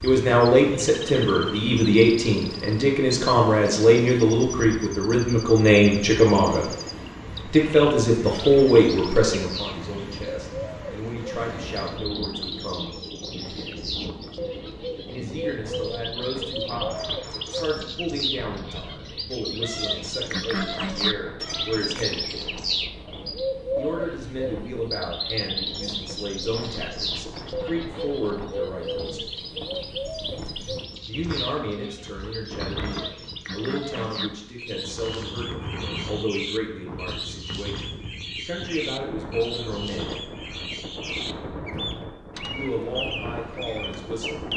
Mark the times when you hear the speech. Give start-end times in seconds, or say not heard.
0.0-6.7, 7.5-13.0, 15.1-22.6, 23.8-29.2, 31.1-40.2, 42.5-44.5.